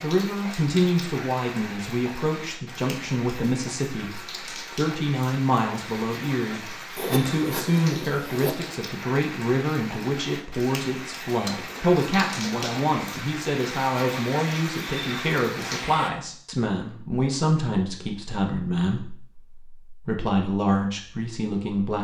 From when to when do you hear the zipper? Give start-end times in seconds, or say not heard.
7.0-8.6.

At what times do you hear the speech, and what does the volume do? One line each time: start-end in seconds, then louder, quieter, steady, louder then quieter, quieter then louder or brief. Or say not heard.
0.0-21.9 steady.